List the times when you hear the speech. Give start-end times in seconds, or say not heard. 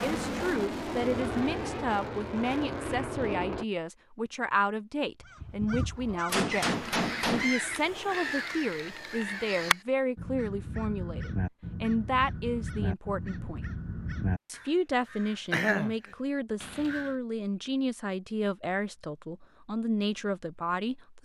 0.0-13.7, 14.4-21.2.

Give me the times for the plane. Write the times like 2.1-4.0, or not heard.
0.0-3.6.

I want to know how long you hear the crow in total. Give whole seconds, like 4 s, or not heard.
12 s.